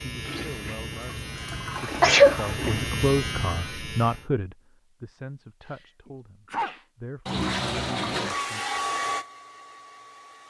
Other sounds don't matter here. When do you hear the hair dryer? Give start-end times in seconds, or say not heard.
8.2-10.4.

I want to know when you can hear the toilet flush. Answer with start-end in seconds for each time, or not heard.
0.2-2.9, 7.2-8.3.